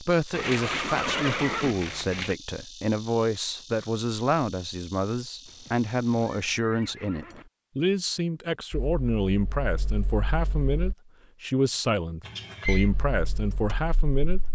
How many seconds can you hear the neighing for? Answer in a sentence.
The neighing can be heard for 5 seconds in total.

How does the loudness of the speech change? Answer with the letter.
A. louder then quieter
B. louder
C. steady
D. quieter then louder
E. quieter
C.